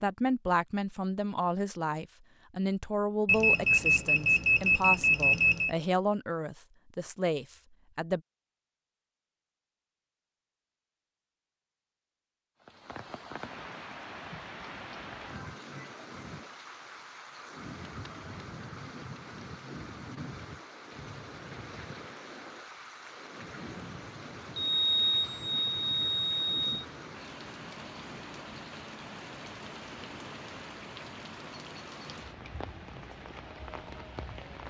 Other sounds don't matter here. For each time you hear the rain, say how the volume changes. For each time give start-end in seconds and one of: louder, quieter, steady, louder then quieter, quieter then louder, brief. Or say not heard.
12.6-34.6 steady.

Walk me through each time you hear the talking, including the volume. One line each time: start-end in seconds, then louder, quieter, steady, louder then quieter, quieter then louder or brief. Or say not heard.
0.0-8.2 steady.